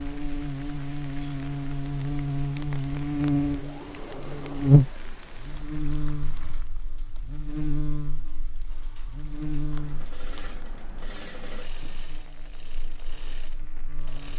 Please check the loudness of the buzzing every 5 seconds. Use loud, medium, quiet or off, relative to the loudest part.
loud, medium, quiet.